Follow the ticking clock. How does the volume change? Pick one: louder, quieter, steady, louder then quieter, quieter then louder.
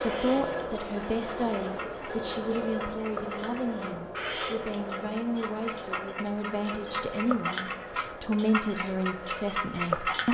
louder.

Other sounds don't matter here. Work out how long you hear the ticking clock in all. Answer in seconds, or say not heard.
10 s.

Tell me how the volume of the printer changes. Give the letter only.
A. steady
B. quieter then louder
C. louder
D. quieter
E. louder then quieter
D.